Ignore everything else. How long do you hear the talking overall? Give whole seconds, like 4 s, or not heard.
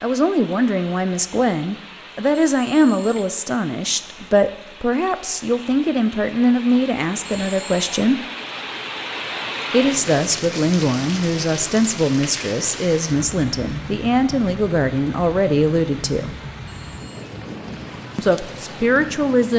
16 s.